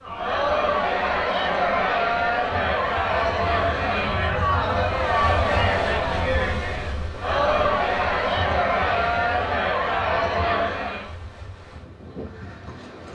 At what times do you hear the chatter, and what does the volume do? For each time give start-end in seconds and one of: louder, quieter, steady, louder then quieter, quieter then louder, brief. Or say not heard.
0.0-11.2 steady.